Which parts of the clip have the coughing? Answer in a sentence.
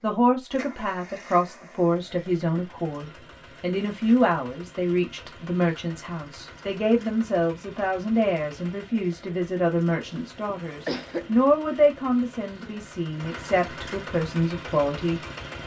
The coughing can be heard from 10.1 to 11.3 s.